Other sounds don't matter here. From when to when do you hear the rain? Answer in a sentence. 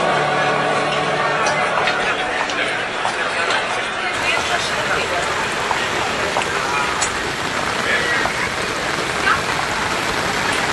The rain can be heard from 4.1 to 10.6 s.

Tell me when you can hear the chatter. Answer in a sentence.
You can hear the chatter from 0.0 to 10.6 s.